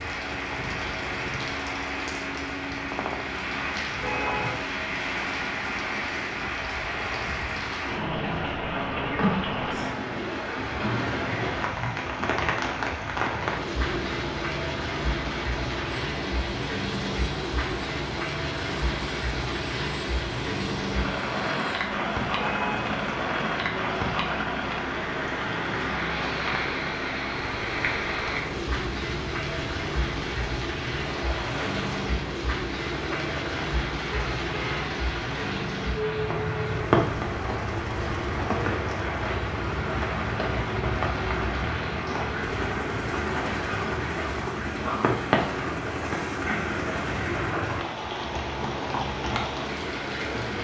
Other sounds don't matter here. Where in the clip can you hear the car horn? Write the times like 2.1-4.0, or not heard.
3.9-4.7, 22.3-22.9, 34.1-34.8.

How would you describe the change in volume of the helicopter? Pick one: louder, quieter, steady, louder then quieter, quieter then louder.
steady.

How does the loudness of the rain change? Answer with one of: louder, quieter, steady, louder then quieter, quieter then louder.
steady.